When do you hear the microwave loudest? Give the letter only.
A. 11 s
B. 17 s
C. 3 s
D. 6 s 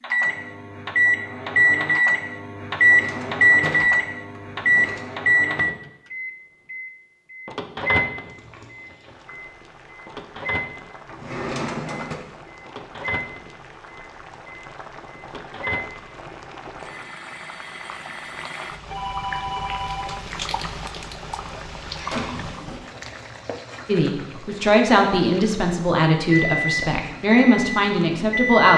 C.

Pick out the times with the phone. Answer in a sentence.
You can hear the phone from 18.9 to 20.2 s.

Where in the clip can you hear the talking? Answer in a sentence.
The talking can be heard from 23.9 to 28.7 s.